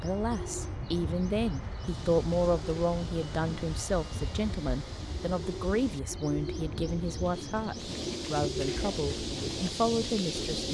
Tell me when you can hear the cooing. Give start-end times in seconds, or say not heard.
0.0-10.6.